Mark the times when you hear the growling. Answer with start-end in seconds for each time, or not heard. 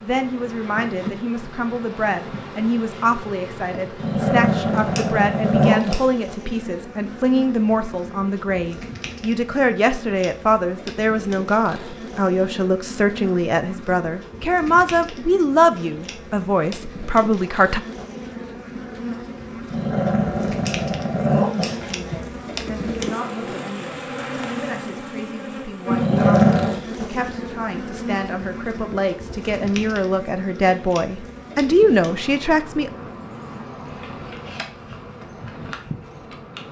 4.0-6.0, 19.7-22.2, 25.9-26.8.